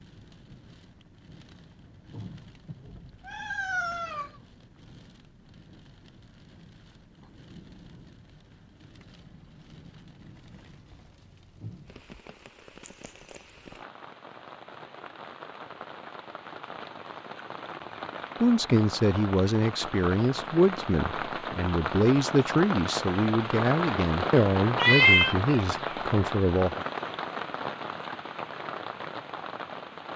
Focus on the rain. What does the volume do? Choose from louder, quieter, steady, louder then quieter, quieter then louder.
louder.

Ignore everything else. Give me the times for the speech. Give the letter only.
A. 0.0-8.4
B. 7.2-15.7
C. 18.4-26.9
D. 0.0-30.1
C.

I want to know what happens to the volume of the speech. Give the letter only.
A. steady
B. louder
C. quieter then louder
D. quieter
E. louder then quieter
A.